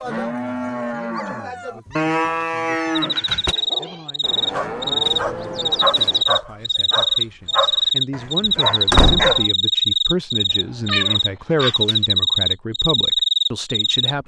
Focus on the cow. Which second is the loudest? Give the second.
2 s.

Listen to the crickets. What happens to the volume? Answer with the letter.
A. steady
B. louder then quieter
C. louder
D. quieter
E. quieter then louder
A.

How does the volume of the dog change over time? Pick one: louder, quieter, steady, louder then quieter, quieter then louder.
louder.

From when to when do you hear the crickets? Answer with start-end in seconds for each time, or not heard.
3.0-14.2.